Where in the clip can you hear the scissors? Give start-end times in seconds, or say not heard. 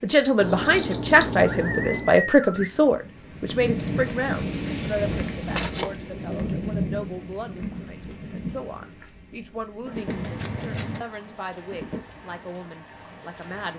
0.4-2.1, 5.5-5.9, 10.1-11.1.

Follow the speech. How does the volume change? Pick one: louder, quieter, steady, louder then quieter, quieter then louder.
quieter.